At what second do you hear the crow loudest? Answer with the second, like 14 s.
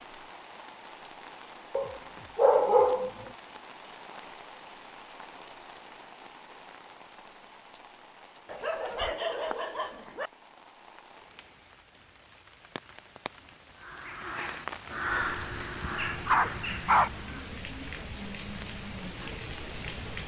15 s.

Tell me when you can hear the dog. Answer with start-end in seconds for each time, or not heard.
1.8-3.1, 8.4-10.3, 15.8-17.1.